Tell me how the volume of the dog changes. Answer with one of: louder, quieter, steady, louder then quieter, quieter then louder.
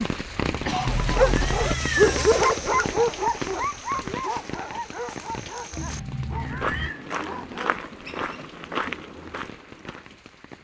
quieter.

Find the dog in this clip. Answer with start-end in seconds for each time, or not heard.
0.8-7.8.